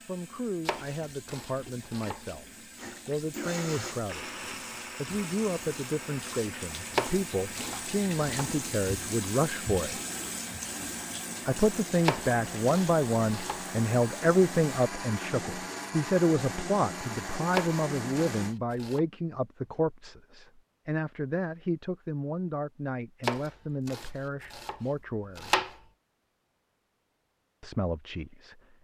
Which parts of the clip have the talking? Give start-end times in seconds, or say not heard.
0.1-2.5, 3.0-4.3, 5.0-10.0, 11.4-25.6, 27.6-28.7.